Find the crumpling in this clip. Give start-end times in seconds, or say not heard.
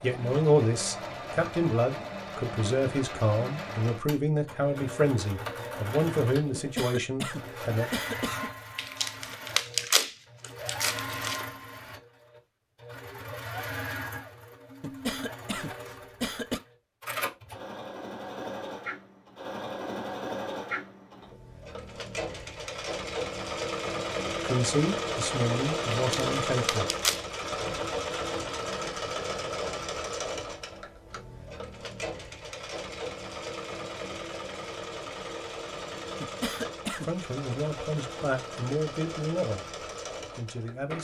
8.8-11.4, 25.9-27.2.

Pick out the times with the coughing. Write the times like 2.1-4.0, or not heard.
6.5-8.5, 14.8-16.6, 36.2-37.1.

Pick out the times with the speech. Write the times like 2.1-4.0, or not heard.
0.0-7.9, 24.4-26.9, 37.0-39.6, 40.4-41.0.